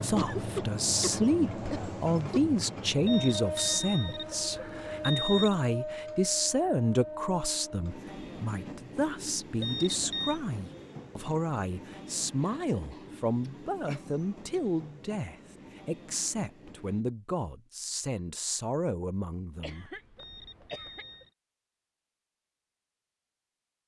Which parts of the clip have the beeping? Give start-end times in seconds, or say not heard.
3.0-5.5, 9.6-10.4, 20.1-21.3.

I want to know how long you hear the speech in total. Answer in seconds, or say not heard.
20 s.